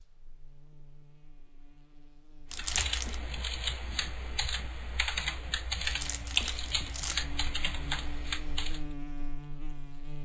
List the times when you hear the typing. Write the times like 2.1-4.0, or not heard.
2.5-8.9.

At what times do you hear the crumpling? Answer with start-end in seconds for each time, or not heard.
2.5-3.2, 5.8-7.2.